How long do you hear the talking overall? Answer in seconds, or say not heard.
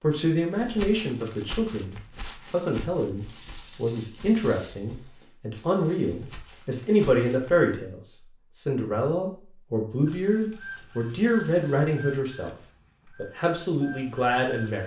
15 s.